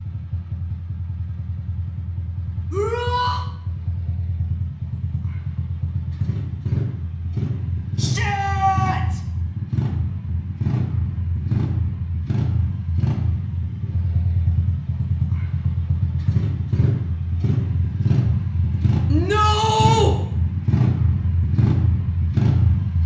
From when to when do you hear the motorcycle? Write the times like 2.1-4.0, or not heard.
0.0-23.0.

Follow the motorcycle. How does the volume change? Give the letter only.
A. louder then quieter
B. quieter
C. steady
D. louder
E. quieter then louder
D.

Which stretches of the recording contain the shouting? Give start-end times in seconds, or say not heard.
2.7-3.5, 8.0-9.2, 19.1-20.1.